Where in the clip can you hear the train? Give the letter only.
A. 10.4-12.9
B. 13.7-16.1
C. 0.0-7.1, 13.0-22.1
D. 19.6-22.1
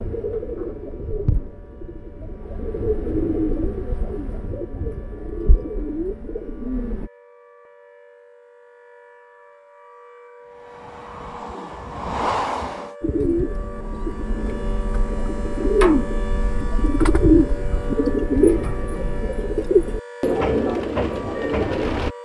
A.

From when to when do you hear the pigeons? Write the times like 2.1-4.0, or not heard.
0.0-7.1, 13.0-22.1.